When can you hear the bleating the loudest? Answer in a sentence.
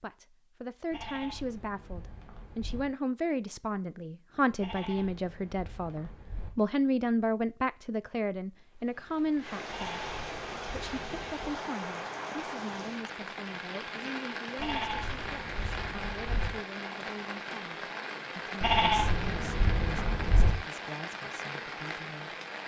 The loudest moment of the bleating is at 19 seconds.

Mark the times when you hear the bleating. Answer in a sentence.
The bleating can be heard from 0.9 to 2.9 s, from 4.6 to 6.5 s, from 9.7 to 11.3 s, from 14.6 to 16.5 s and from 18.6 to 20.5 s.